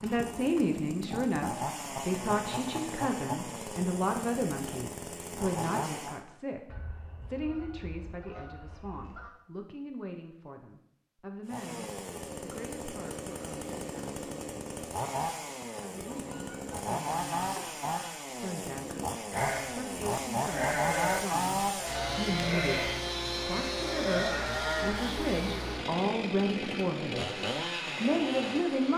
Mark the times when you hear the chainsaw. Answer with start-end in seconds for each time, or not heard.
0.0-6.2, 11.4-28.9.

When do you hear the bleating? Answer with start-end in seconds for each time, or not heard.
19.3-25.1.